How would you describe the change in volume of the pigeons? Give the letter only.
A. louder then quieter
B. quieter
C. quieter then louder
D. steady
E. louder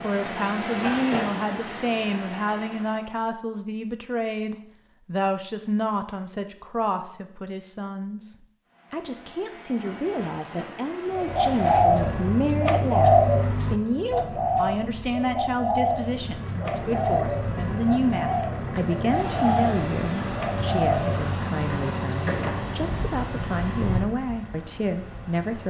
B.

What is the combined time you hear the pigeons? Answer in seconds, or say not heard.
10 s.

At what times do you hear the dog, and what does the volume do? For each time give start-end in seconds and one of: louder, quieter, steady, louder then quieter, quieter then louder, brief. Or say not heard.
not heard.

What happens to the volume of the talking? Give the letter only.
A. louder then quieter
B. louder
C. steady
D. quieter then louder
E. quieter
C.